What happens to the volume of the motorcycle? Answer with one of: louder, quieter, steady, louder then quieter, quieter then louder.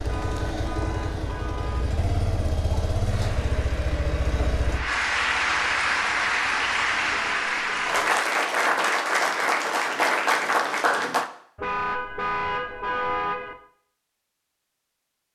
quieter.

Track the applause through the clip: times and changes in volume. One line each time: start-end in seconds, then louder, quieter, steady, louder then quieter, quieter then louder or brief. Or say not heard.
3.0-11.3 louder.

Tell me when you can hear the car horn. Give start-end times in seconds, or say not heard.
0.1-2.0, 7.1-8.2, 11.6-13.6.